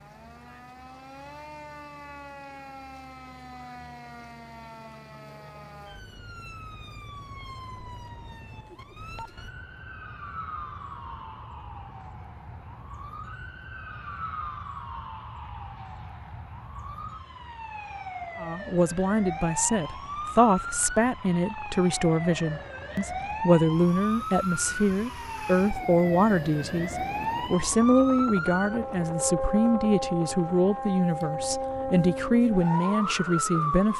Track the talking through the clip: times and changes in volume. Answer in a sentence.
The talking can be heard from 18.4 to 33.9 s, at a steady volume.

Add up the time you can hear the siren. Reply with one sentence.
The siren can be heard for 34 seconds in total.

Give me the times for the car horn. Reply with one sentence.
The car horn can't be heard in this clip.